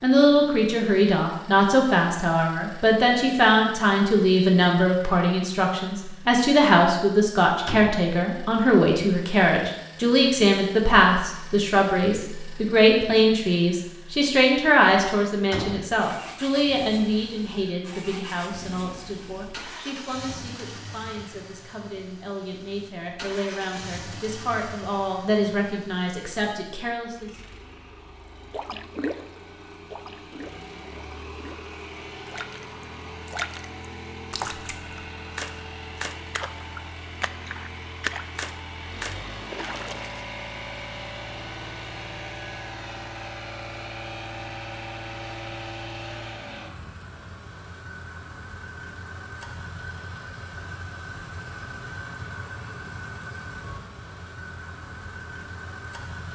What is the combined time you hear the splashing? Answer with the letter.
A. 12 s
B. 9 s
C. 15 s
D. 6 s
A.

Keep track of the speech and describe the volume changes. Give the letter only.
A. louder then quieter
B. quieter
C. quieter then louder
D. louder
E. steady
B.